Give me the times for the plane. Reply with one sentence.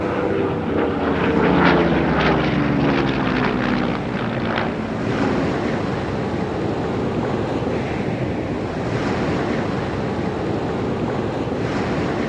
You can hear the plane from 0.0 to 5.5 s.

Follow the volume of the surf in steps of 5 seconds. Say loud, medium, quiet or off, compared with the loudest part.
medium, loud, loud.